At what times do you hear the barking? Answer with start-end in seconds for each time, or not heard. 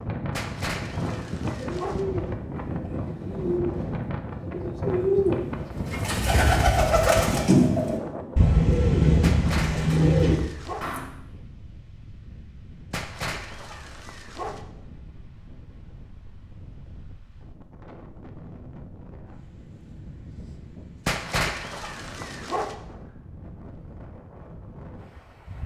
0.3-2.0, 9.2-10.8, 12.9-14.6, 21.1-22.8.